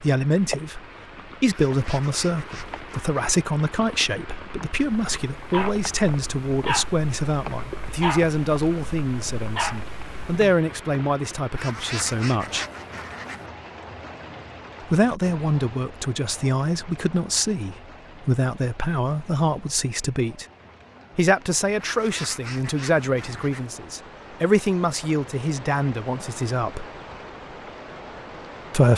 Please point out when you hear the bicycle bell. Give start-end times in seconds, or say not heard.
not heard.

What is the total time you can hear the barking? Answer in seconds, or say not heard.
6 s.